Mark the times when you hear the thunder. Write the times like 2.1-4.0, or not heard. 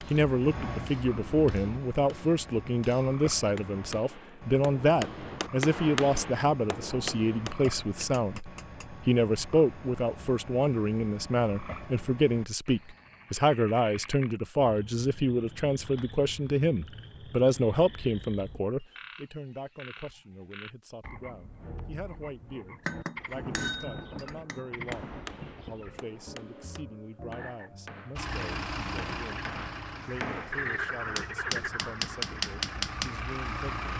23.2-26.1.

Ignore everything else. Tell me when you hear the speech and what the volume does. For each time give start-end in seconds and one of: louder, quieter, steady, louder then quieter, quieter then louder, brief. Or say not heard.
0.0-33.9 quieter.